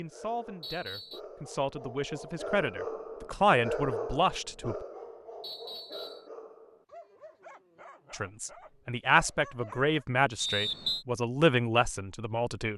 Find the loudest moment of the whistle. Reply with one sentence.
The loudest moment of the whistle is at 11 seconds.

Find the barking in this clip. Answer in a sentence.
The barking can be heard from 0.0 to 10.1 s.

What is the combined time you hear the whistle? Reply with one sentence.
You can hear the whistle for 2 seconds altogether.